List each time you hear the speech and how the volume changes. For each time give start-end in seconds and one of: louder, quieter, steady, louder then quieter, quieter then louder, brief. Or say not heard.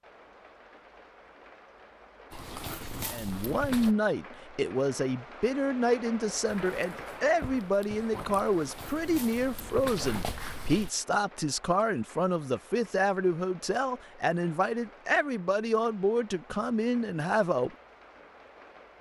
3.1-17.8 steady.